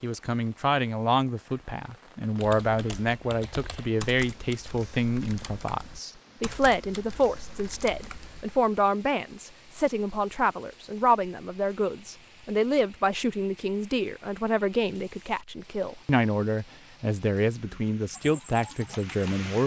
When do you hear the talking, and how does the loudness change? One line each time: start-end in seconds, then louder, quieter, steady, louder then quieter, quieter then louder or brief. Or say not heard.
0.0-19.6 steady.